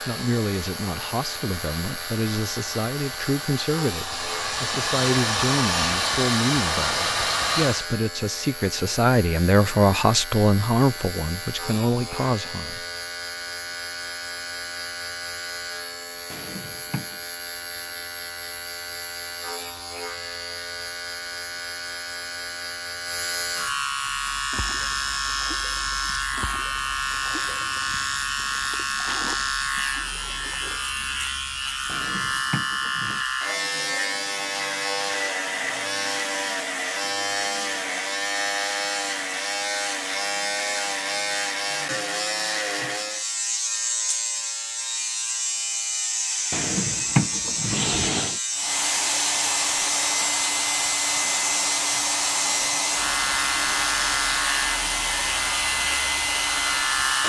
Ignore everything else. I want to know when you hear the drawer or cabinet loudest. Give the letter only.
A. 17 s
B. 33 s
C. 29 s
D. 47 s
D.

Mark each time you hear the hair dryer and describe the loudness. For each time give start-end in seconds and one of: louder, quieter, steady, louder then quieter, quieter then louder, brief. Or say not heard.
0.0-7.9 louder
48.5-57.2 steady.